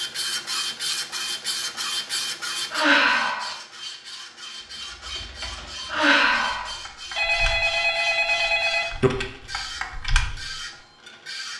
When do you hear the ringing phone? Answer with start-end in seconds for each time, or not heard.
7.2-9.1.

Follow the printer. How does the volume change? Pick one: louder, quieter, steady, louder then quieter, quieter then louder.
quieter.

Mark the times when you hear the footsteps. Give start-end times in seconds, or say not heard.
not heard.